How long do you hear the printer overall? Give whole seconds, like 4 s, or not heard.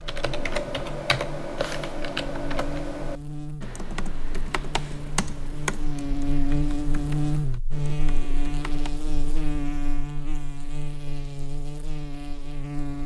not heard.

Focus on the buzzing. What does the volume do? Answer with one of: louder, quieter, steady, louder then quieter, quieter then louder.
louder then quieter.